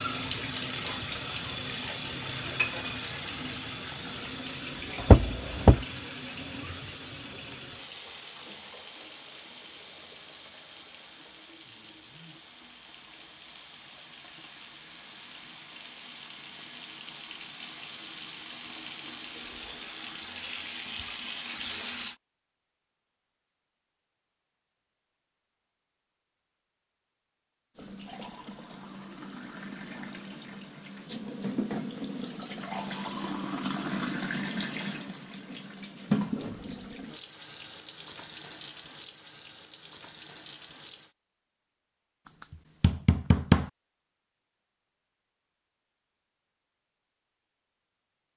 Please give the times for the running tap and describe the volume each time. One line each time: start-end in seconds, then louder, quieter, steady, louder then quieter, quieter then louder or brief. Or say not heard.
0.0-22.2 quieter then louder
27.8-41.1 louder then quieter.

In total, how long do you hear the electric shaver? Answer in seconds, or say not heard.
not heard.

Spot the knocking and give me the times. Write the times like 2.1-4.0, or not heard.
5.0-5.8, 42.8-43.6.